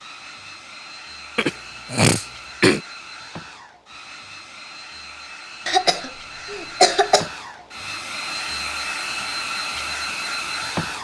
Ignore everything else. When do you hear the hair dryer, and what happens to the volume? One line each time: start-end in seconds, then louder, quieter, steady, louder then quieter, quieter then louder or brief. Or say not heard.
0.0-11.0 louder.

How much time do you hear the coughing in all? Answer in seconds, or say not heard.
3 s.